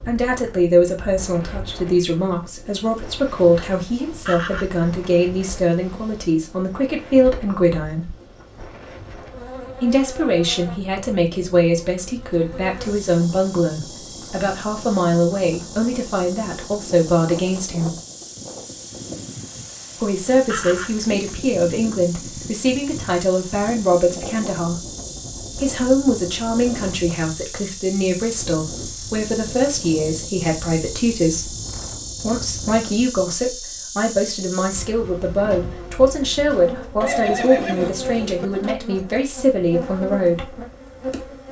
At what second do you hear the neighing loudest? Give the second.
37 s.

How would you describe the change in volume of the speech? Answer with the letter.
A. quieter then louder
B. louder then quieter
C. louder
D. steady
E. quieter
D.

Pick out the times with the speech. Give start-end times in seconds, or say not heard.
0.1-8.1, 9.8-17.9, 19.9-24.9, 25.6-31.6, 32.2-40.6.